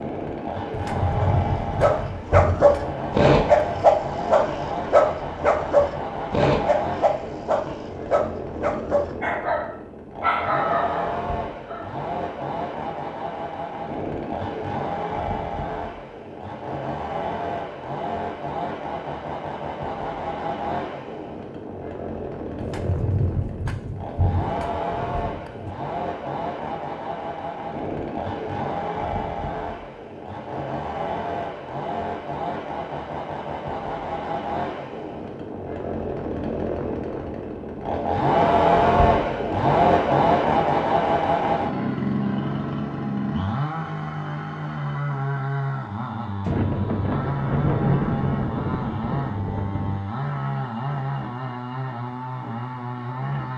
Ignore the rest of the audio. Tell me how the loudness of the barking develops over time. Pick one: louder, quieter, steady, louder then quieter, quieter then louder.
quieter.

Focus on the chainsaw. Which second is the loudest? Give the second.
39 s.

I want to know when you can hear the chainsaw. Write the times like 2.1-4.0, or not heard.
0.0-53.5.